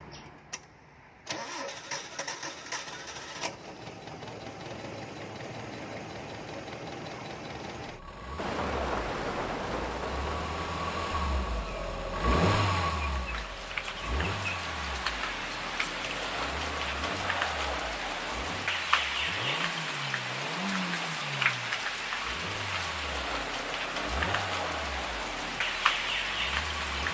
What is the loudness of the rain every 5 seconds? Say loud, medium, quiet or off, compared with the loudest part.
off, loud, medium, loud, loud, loud.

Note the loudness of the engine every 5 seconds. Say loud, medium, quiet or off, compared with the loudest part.
medium, medium, loud, medium, medium, medium.